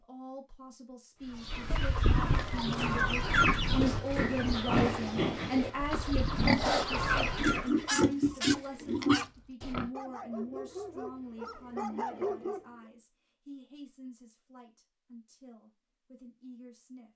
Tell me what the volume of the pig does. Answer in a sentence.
The loudness of the pig goes up.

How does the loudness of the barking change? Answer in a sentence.
The volume of the barking goes down, then up.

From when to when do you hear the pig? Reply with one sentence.
You can hear the pig from 2.5 to 9.9 s.